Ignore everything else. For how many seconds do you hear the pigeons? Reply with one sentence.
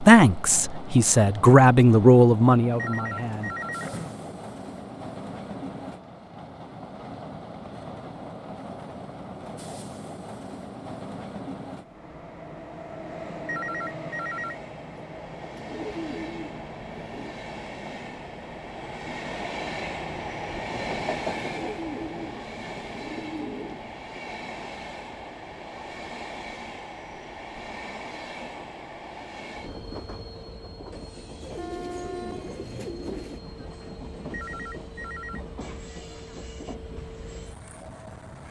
You can hear the pigeons for 8 seconds altogether.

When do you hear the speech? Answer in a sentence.
You can hear the speech from 0.0 to 3.5 s.